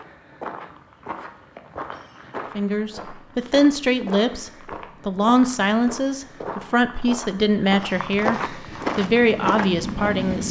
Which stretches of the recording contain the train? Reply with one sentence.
You can hear the train from 8.5 to 10.4 s.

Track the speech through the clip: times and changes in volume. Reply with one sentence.
You can hear the speech from 2.5 to 10.4 s, at a steady volume.